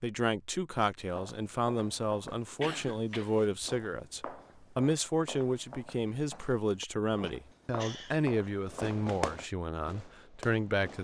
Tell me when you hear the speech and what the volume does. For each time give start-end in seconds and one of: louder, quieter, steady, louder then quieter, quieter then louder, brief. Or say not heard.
0.0-11.0 steady.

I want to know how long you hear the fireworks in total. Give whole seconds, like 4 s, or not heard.
2 s.